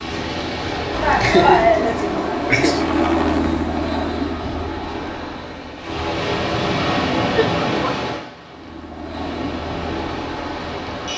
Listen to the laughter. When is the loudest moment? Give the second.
2 s.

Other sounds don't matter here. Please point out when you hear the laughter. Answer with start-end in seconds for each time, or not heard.
0.9-2.8, 7.3-8.0.